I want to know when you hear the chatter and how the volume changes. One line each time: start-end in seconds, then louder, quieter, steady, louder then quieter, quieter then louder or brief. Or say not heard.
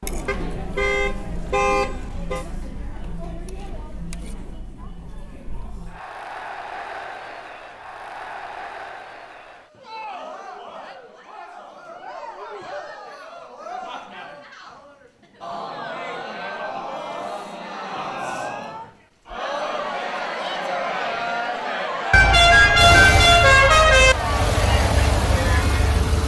0.0-26.1 louder.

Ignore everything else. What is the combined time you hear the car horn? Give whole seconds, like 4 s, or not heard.
4 s.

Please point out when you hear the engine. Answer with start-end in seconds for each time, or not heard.
22.8-26.2.